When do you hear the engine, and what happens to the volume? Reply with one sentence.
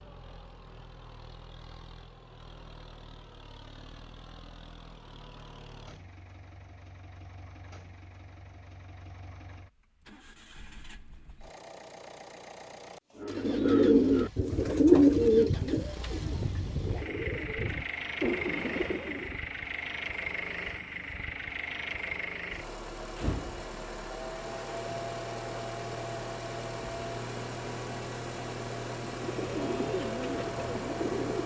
You can hear the engine from 0.0 to 31.4 s, getting louder.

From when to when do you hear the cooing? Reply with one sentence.
You can hear the cooing from 13.2 to 19.4 s and from 29.1 to 31.4 s.